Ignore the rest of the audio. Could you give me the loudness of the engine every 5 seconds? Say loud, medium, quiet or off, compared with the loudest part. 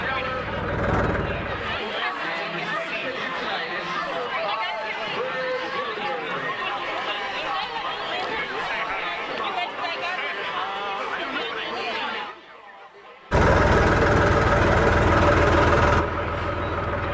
medium, off, loud, loud.